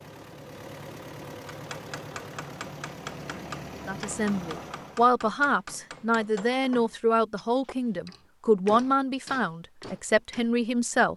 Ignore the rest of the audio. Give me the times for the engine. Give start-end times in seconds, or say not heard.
0.0-5.1.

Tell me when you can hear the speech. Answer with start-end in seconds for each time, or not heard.
3.9-11.1.